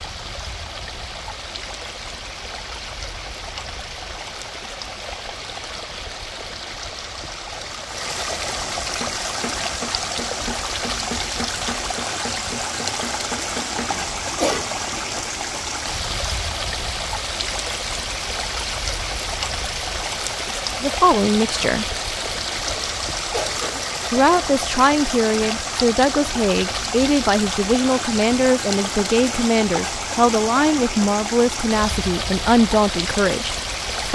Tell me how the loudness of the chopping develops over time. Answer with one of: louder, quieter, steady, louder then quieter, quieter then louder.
steady.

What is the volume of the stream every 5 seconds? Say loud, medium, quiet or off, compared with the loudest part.
medium, loud, loud, loud, loud, loud, loud.